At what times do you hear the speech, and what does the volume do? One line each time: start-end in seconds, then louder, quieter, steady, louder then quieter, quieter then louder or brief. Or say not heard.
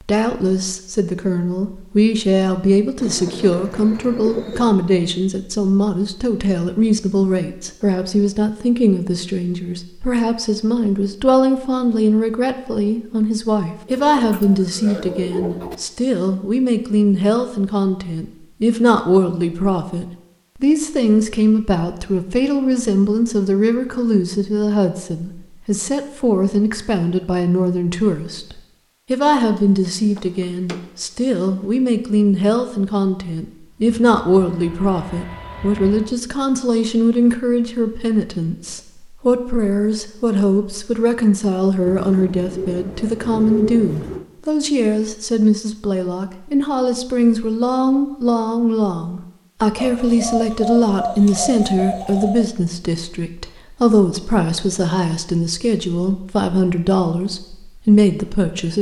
0.1-58.7 steady.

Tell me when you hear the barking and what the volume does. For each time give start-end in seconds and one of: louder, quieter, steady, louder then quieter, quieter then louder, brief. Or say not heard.
not heard.